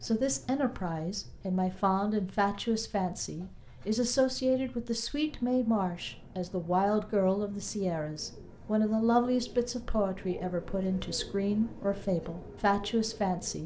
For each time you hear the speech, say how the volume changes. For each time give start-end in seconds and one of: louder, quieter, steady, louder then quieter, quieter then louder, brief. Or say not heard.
0.0-13.6 steady.